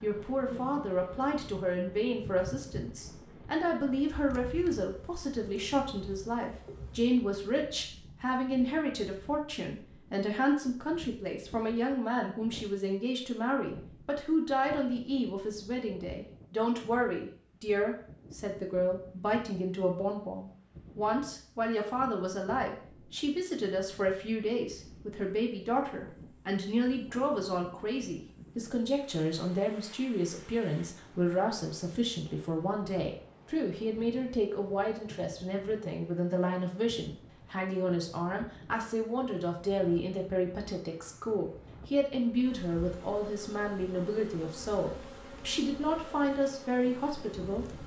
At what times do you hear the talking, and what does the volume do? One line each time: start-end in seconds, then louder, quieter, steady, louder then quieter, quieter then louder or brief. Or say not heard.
0.0-47.8 steady.